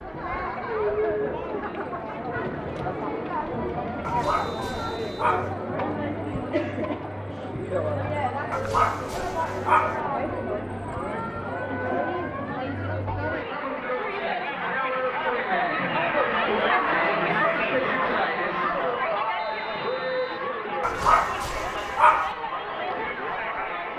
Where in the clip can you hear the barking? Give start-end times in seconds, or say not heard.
4.0-5.5, 8.5-10.0, 20.8-22.3.